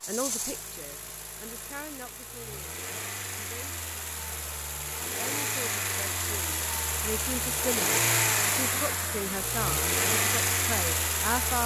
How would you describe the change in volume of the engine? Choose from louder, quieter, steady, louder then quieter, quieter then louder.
louder.